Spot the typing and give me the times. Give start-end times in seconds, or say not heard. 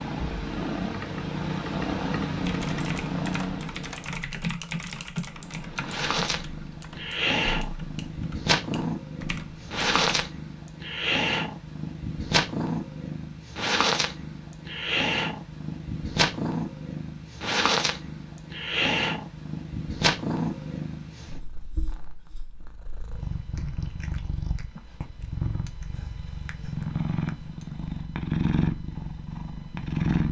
2.4-10.2.